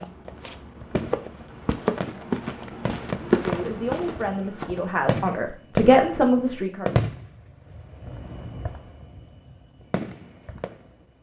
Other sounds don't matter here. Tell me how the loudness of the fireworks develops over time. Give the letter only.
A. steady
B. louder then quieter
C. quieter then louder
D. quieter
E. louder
B.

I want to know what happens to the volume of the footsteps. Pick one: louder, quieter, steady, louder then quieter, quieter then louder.
louder then quieter.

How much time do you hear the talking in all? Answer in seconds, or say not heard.
4 s.